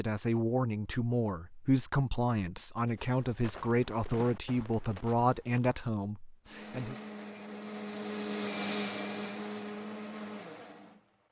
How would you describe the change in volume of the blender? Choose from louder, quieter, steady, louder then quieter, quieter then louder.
louder then quieter.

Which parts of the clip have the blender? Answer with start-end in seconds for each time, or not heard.
6.5-11.2.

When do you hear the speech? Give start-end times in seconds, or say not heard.
0.0-7.0.